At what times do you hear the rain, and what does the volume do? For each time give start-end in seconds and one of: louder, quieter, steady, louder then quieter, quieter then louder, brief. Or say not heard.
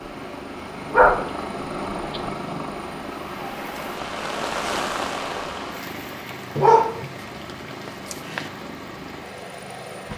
0.0-10.1 louder then quieter.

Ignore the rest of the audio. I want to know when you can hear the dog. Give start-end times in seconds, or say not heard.
0.9-2.3, 6.5-7.1, 7.8-8.4.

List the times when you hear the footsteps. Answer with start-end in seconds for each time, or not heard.
not heard.